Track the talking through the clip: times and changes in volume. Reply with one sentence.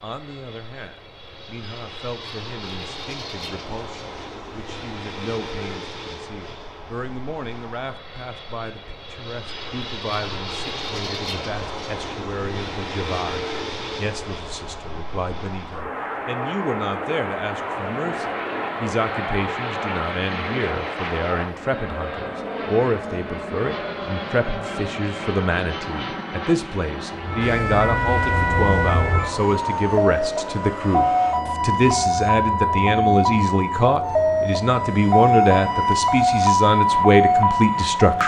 The talking can be heard from 0.0 to 38.2 s, getting louder.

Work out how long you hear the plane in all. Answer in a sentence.
You can hear the plane for 38 seconds altogether.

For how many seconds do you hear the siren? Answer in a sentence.
You can hear the siren for 11 seconds altogether.